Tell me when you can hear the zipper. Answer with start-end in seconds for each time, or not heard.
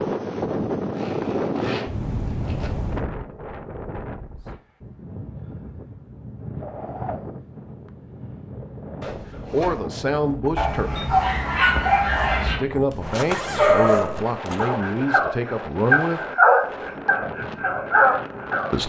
0.9-2.7, 9.0-9.9, 12.9-14.7.